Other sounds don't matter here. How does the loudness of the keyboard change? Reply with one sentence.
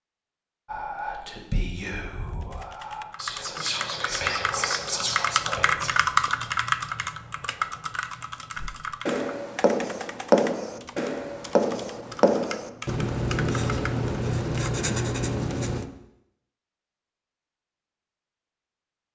The loudness of the keyboard goes up, then down.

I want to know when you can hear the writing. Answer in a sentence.
The writing can be heard from 8.6 to 15.8 s.